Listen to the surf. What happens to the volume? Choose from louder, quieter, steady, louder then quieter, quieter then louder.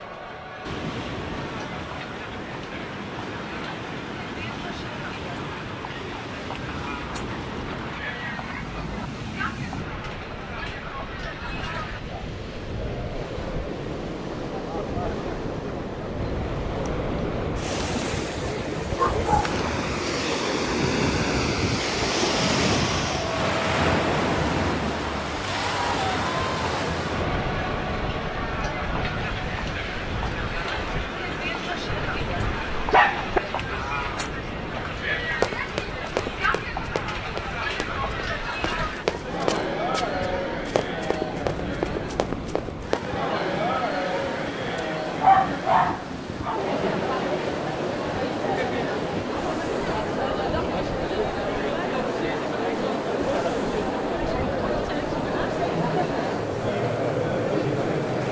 louder then quieter.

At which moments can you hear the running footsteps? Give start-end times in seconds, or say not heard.
35.4-43.1.